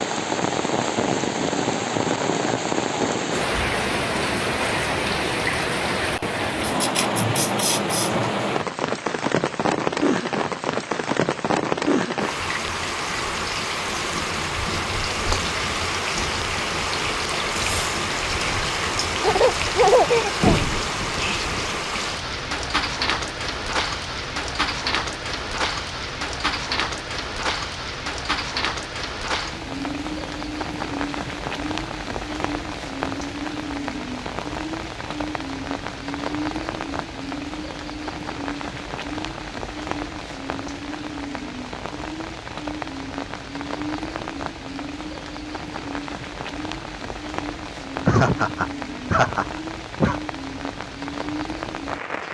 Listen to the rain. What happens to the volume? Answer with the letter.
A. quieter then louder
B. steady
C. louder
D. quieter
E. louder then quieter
D.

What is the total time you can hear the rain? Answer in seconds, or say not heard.
52 s.